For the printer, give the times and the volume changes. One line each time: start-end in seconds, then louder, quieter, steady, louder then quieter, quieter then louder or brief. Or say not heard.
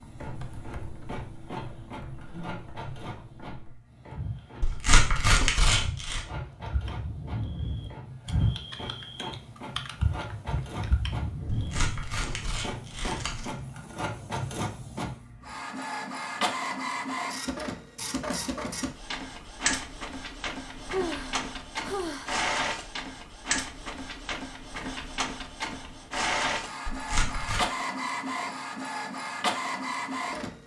0.0-30.6 louder.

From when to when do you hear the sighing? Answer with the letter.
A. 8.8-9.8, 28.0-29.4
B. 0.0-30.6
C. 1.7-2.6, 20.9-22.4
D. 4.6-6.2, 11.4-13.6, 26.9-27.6
C.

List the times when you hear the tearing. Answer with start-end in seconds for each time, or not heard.
4.6-6.2, 11.4-13.6, 26.9-27.6.